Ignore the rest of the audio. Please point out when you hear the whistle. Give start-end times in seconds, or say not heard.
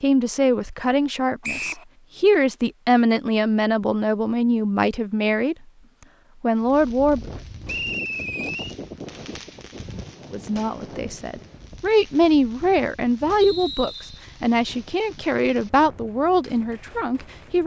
1.4-1.9, 7.7-8.8, 13.4-14.2.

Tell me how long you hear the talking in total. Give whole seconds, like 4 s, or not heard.
14 s.